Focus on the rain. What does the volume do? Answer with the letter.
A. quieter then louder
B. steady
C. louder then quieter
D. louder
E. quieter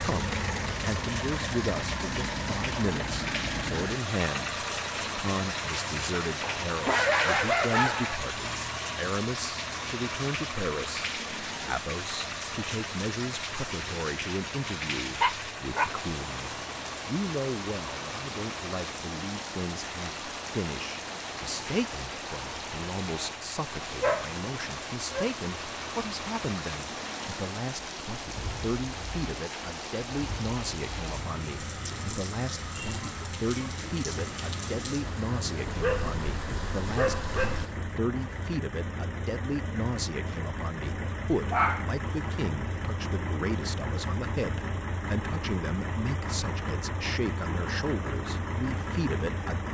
B.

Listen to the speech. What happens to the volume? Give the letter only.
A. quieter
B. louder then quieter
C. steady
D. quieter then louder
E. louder
C.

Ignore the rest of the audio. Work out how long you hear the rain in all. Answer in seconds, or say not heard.
38 s.